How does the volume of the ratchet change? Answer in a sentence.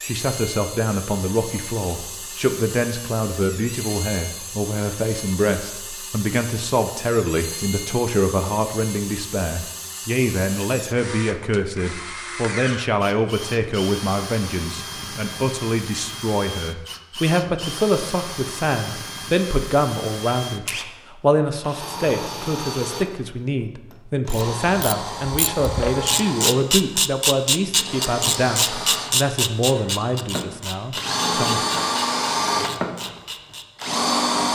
The volume of the ratchet goes down.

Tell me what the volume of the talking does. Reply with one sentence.
The loudness of the talking stays about the same.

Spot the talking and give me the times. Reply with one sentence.
The talking can be heard from 0.0 to 31.9 s.